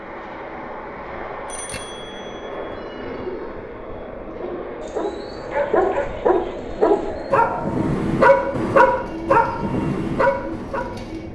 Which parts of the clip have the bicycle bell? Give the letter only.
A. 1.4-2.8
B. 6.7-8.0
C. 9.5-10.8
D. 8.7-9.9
A.